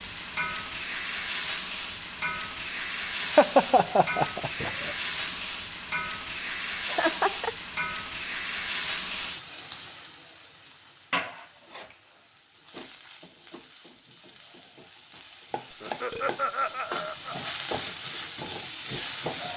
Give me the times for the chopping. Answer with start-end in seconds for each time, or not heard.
not heard.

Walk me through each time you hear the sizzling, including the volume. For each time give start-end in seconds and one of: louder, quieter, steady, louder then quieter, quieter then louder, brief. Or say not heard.
0.0-19.5 quieter then louder.